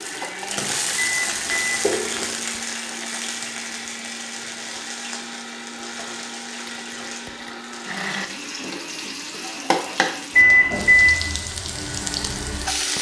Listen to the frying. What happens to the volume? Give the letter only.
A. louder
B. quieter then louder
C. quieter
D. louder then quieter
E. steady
B.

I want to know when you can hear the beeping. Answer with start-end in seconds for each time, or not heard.
0.9-2.2, 10.3-11.2.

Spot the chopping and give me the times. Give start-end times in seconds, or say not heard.
not heard.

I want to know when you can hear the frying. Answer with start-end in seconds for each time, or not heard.
0.0-12.9.